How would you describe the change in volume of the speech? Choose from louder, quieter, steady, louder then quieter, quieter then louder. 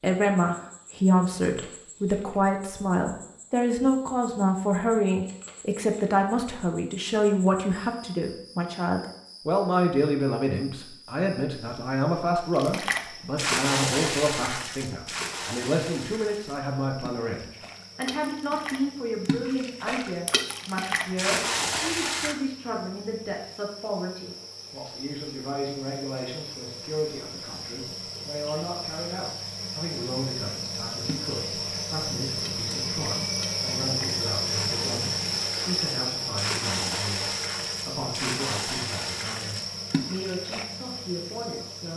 quieter.